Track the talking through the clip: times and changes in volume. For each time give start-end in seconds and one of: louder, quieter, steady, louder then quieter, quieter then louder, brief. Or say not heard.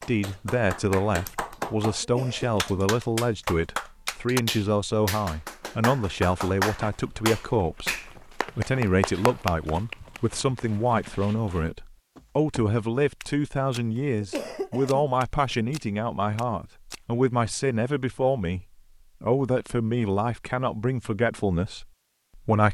0.1-22.6 steady.